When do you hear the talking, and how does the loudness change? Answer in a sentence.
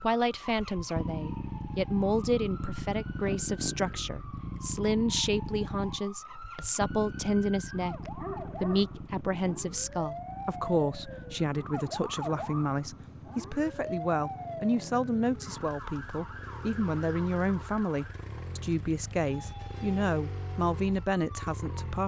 You can hear the talking from 0.0 to 22.0 s, at a steady volume.